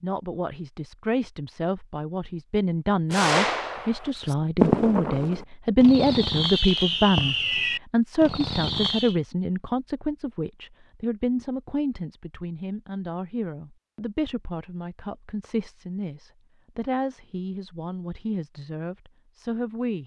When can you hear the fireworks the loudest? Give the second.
5 s.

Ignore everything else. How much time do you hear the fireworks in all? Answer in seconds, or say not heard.
6 s.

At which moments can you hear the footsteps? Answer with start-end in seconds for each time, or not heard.
not heard.